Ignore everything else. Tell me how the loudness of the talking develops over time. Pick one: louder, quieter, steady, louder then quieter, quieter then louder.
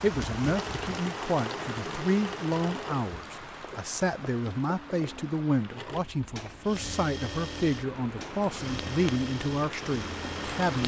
steady.